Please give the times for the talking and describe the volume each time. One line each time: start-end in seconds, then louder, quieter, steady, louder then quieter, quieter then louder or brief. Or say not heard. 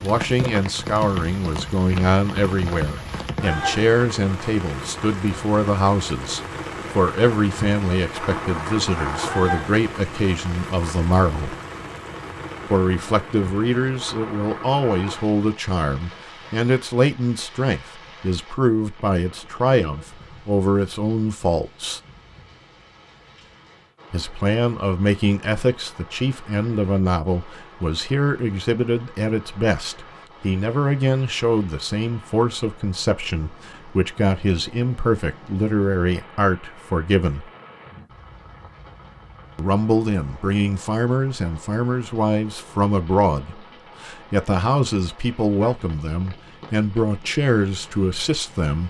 0.0-11.6 steady
12.7-22.0 steady
24.1-37.5 steady
39.5-48.8 steady.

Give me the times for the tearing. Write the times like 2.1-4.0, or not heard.
not heard.